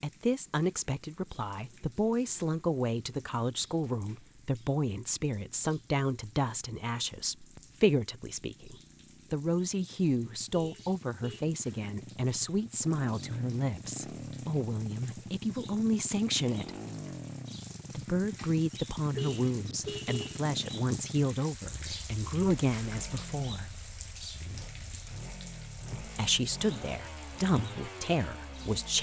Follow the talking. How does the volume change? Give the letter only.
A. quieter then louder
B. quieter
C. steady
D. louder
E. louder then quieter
C.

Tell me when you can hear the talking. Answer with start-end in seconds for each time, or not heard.
0.0-16.7, 17.9-23.7, 25.9-28.9.